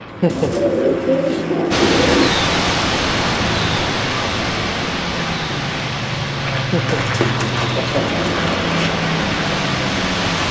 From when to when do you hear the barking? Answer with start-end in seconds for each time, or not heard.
not heard.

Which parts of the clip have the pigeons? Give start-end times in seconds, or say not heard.
0.2-2.3, 6.8-8.9.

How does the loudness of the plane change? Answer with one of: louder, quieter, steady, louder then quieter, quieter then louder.
louder.